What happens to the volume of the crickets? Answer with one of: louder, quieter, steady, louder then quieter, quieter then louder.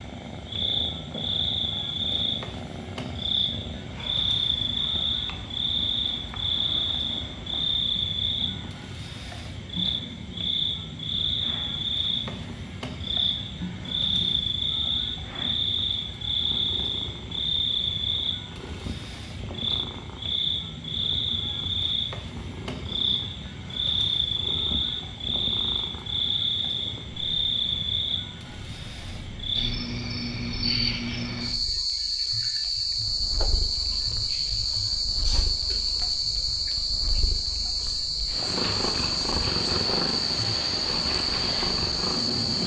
steady.